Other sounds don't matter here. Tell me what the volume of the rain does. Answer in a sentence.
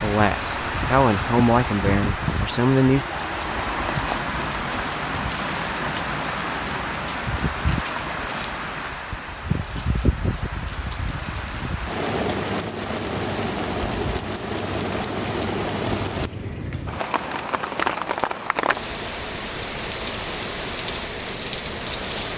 The loudness of the rain stays about the same.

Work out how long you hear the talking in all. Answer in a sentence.
The talking can be heard for 3 seconds in total.